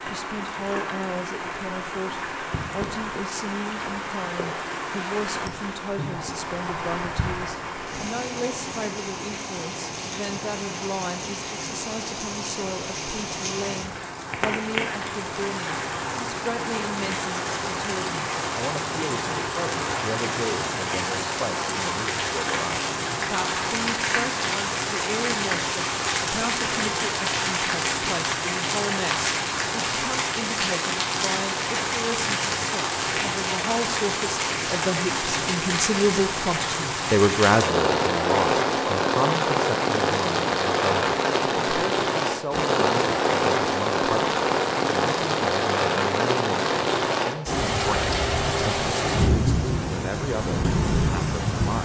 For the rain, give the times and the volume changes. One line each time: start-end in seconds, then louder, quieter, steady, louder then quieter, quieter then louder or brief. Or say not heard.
0.0-51.8 louder.